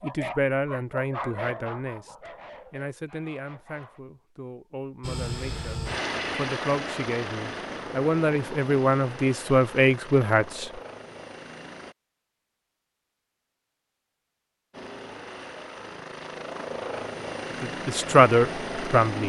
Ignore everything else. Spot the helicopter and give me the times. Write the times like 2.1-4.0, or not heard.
5.0-11.9, 14.7-19.2.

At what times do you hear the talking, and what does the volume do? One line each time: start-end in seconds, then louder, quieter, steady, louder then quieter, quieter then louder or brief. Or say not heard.
0.0-10.8 quieter then louder
17.6-19.2 brief.